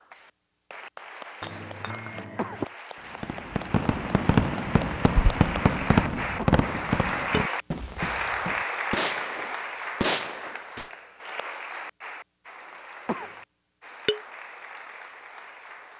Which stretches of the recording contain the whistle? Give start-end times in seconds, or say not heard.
not heard.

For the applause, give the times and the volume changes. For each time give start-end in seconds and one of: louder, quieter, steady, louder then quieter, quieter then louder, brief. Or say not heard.
0.0-15.9 louder then quieter.